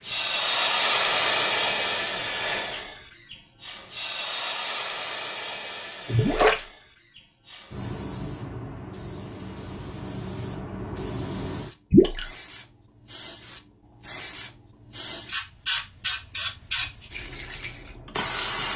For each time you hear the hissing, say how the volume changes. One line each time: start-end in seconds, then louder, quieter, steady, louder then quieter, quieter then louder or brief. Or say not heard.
0.0-18.7 quieter then louder.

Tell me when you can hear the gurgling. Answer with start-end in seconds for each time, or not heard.
6.0-6.6, 11.9-12.3.